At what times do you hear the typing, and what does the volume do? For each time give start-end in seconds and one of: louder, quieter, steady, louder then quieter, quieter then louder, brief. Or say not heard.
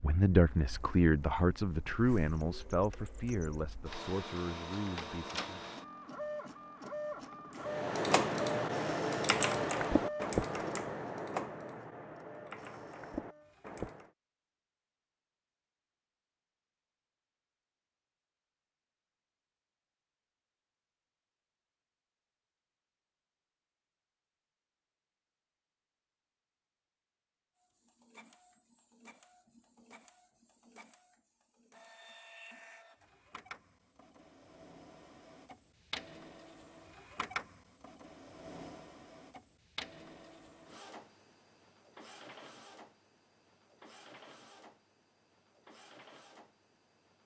7.6-14.1 quieter.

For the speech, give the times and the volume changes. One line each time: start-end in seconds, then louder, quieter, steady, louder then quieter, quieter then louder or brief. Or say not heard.
0.0-5.7 quieter.